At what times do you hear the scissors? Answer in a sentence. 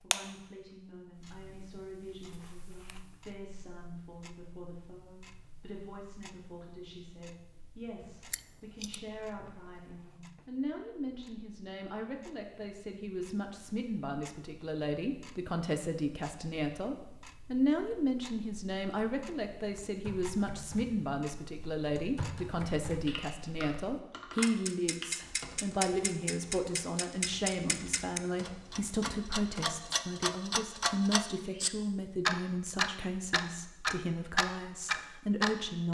You can hear the scissors from 8.0 to 9.9 s.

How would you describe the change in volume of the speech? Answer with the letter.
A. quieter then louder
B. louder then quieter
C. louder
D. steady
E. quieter
C.